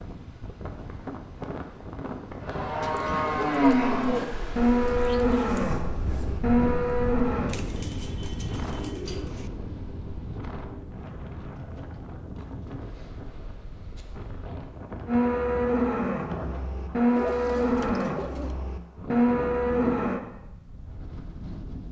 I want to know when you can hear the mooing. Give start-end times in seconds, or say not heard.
2.4-7.5, 15.1-20.2.